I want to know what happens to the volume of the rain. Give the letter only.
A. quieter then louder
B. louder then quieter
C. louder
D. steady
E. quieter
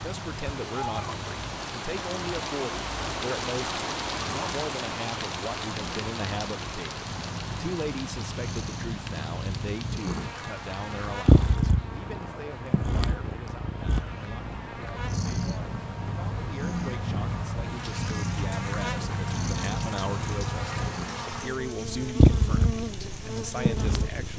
E.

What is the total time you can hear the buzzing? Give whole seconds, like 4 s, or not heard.
14 s.